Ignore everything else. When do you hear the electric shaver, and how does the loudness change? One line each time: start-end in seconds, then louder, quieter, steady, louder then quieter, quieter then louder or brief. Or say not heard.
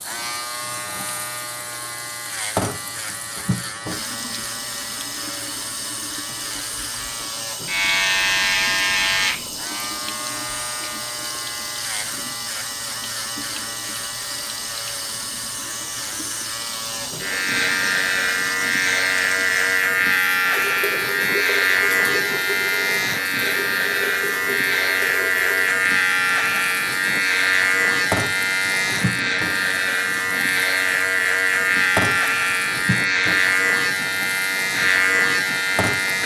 0.0-36.2 louder.